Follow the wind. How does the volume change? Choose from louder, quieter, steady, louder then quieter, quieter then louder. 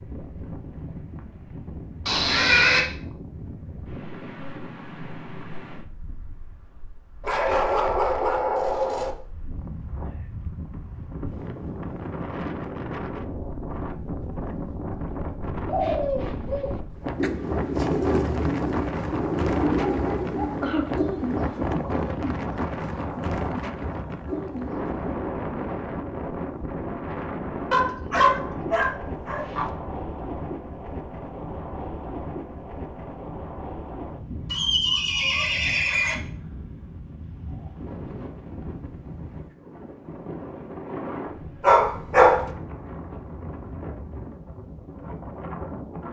louder then quieter.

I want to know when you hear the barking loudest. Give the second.
42 s.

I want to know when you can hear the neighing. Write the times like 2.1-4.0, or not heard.
2.0-2.9, 34.5-36.1.